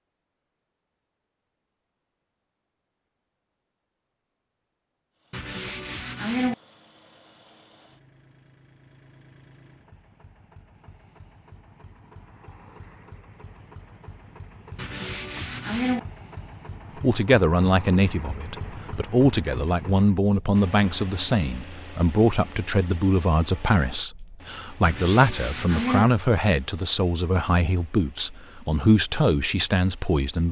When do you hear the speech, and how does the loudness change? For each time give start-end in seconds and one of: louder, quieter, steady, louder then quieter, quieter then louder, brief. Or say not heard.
16.9-30.4 steady.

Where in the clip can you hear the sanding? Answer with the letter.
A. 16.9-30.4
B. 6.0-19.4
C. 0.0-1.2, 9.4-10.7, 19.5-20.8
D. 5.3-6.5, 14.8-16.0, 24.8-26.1
D.